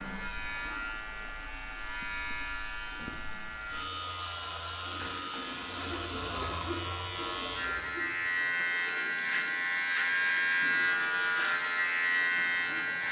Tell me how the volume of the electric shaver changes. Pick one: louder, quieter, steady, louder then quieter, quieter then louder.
louder.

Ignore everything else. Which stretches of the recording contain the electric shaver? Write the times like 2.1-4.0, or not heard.
0.0-13.0.